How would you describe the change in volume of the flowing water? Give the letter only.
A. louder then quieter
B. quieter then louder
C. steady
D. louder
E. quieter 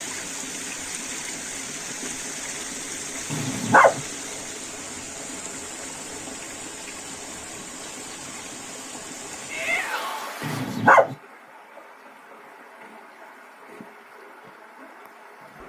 E.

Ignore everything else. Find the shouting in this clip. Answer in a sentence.
You can hear the shouting from 9.4 to 10.3 s.